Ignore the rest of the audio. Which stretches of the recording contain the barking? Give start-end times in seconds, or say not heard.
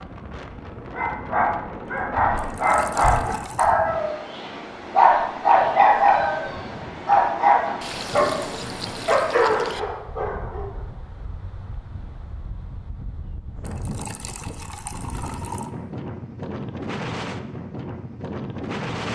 0.5-10.7.